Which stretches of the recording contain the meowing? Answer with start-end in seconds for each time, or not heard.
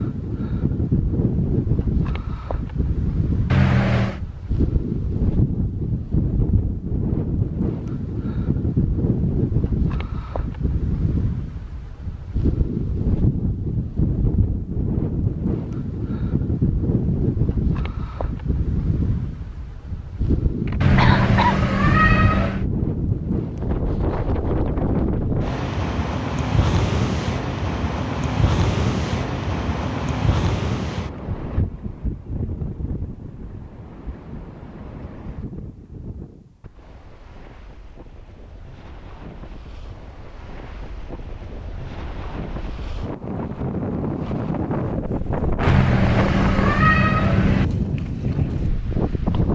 3.5-4.2, 20.8-22.6, 45.6-47.6.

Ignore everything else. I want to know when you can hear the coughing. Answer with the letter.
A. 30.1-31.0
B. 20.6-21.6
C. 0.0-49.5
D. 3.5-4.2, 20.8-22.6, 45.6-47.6
B.